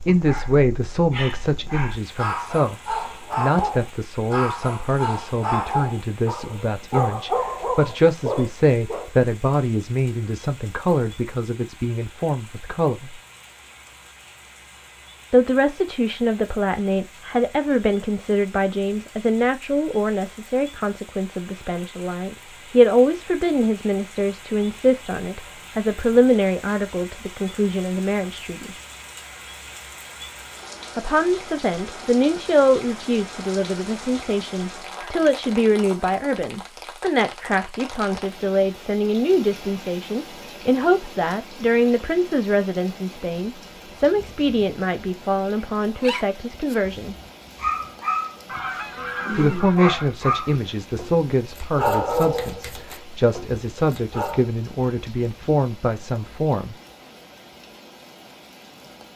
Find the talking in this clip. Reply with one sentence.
The talking can be heard from 0.0 to 13.2 s, from 15.3 to 28.8 s, from 30.9 to 47.1 s and from 49.3 to 56.8 s.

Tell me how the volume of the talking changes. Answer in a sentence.
The loudness of the talking stays about the same.